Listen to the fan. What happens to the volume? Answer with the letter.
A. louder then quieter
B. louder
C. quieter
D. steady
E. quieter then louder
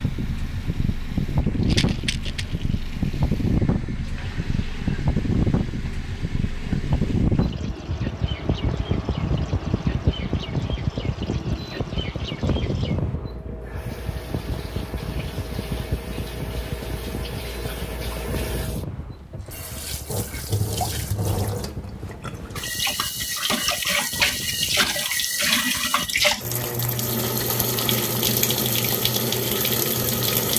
C.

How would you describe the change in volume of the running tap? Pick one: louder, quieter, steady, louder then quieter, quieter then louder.
louder.